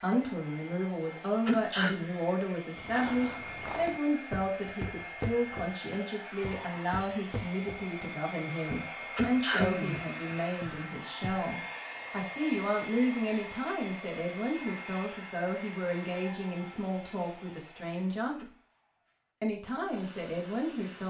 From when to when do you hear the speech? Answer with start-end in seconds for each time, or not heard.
0.0-18.4, 19.4-21.0.